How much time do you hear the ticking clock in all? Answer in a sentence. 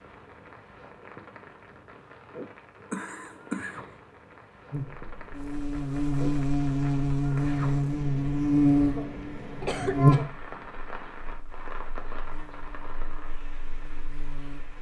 You can't hear the ticking clock here.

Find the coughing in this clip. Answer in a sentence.
The coughing can be heard from 2.9 to 3.9 s and from 9.6 to 10.2 s.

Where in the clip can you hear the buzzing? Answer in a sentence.
The buzzing can be heard from 4.7 to 14.7 s.